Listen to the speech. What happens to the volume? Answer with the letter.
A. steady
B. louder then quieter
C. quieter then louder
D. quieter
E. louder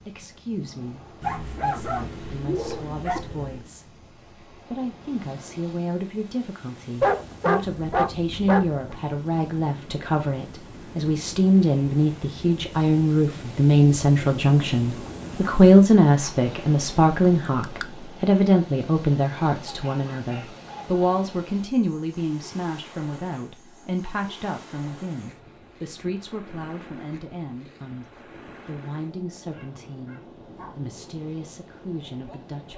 B.